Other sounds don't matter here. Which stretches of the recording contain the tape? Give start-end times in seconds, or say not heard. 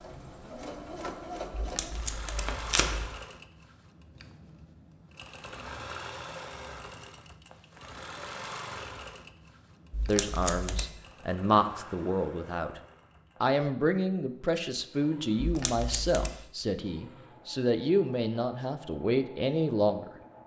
1.6-3.1, 9.9-10.9, 15.4-16.4.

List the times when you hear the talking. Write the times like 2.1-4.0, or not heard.
10.1-12.8, 13.4-20.1.